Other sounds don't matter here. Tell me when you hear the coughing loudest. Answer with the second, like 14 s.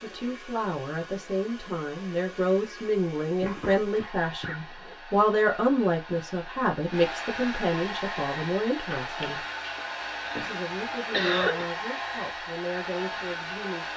11 s.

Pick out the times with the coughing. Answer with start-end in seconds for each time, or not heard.
3.4-5.0, 8.9-11.7.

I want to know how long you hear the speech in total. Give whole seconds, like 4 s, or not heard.
13 s.